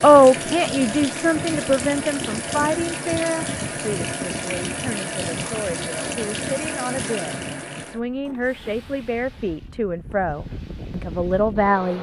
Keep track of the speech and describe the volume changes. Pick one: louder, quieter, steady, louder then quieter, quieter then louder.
quieter then louder.